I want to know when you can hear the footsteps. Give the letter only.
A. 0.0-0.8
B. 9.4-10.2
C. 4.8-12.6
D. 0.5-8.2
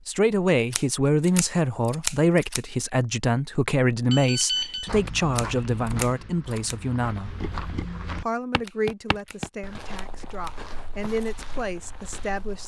C.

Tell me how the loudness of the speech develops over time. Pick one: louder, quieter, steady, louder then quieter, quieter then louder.
quieter.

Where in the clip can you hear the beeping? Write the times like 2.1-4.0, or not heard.
4.1-4.9.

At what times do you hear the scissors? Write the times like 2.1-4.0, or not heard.
0.7-2.6, 5.3-6.8, 8.6-10.6.